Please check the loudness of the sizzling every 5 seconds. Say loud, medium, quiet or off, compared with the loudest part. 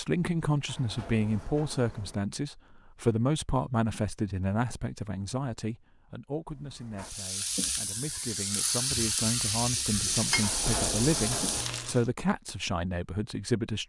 off, loud, loud.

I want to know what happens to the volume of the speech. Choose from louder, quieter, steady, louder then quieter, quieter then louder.
quieter then louder.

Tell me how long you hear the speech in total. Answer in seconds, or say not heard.
14 s.